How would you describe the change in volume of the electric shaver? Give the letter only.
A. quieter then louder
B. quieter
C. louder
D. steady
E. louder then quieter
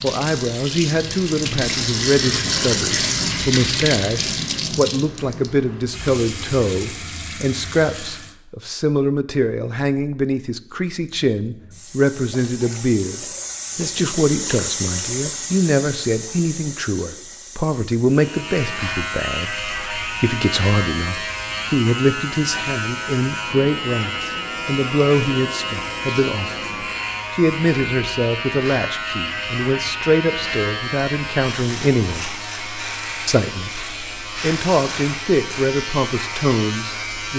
D.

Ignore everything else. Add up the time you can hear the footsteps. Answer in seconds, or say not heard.
not heard.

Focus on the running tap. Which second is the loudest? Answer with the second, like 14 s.
3 s.